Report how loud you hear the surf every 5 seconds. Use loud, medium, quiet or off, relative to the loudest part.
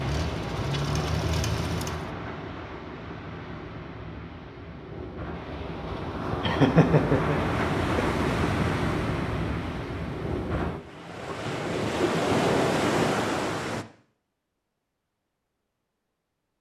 medium, loud, loud, off.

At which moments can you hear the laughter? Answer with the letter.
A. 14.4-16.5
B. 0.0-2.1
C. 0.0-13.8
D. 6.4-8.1
D.